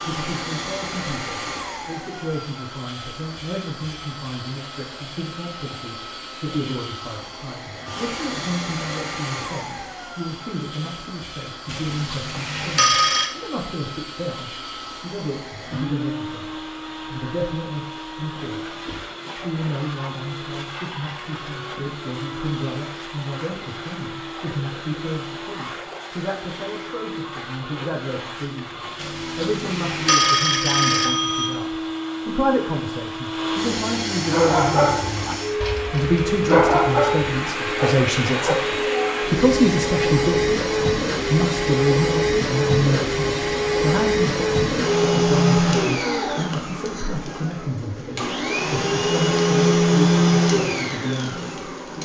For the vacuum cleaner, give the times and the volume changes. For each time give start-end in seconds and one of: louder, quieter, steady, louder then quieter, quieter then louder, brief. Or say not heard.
0.0-52.0 louder.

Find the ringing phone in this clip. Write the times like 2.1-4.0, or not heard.
11.7-13.3, 28.9-31.6.